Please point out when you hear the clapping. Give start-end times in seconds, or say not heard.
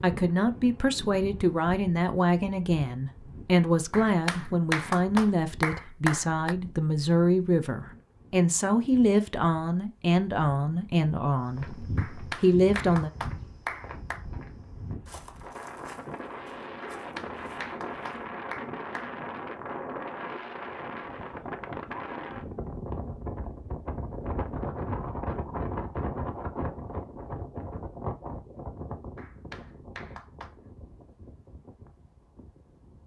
3.9-6.5, 11.9-14.2, 16.9-19.4, 29.1-30.6.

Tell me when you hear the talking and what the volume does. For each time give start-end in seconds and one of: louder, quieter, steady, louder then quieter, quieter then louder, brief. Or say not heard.
0.0-13.1 steady.